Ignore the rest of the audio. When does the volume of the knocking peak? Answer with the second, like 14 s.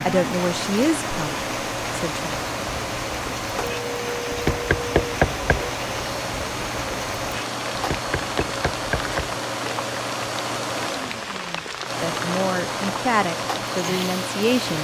5 s.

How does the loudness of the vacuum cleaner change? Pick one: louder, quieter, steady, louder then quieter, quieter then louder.
steady.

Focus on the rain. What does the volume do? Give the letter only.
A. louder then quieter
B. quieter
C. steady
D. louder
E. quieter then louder
C.